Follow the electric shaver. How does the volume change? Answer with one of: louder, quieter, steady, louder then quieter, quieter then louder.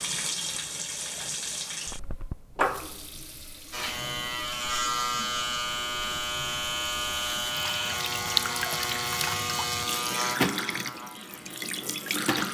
quieter.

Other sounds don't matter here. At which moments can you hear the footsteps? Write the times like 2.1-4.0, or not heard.
not heard.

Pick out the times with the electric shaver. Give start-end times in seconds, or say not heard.
3.7-12.2.